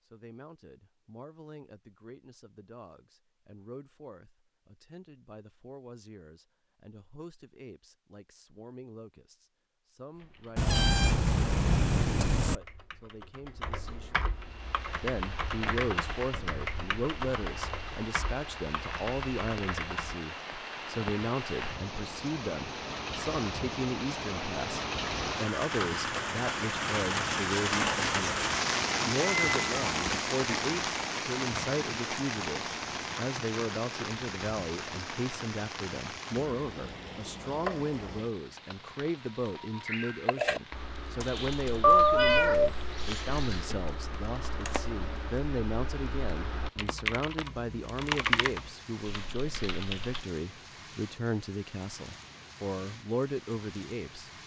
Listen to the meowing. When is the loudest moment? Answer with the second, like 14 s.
42 s.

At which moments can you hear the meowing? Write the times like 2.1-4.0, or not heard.
10.6-12.6, 29.2-30.1, 41.8-43.8.